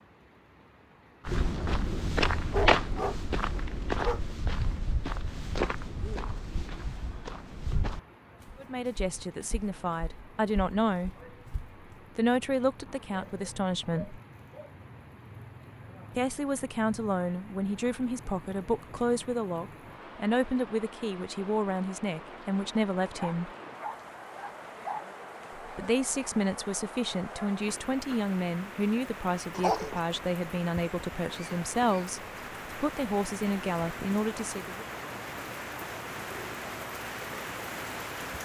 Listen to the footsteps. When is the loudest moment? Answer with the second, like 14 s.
3 s.